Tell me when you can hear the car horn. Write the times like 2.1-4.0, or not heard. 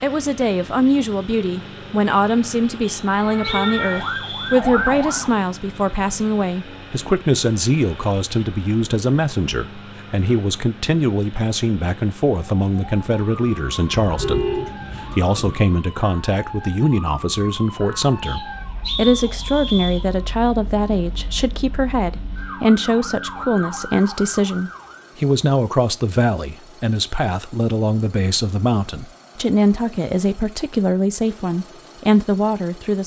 14.0-15.6.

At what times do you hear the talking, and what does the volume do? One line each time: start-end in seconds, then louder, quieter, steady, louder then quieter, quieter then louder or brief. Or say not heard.
0.0-33.0 steady.